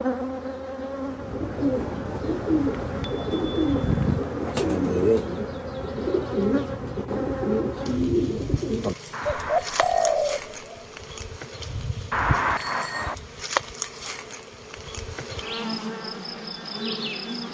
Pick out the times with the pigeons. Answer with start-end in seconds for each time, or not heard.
1.1-10.8.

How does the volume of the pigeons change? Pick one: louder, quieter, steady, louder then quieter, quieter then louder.
steady.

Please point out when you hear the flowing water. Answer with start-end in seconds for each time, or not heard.
not heard.